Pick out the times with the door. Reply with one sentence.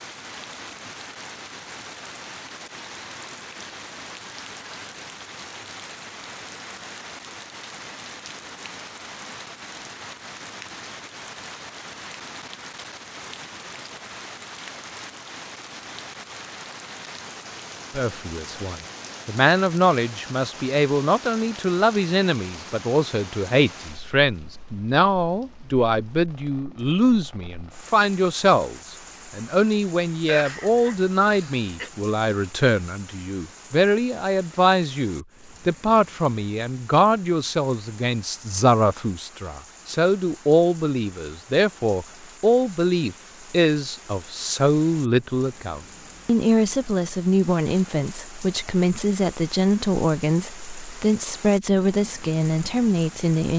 You can't hear the door here.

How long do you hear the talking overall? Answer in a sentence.
The talking can be heard for 35 seconds in total.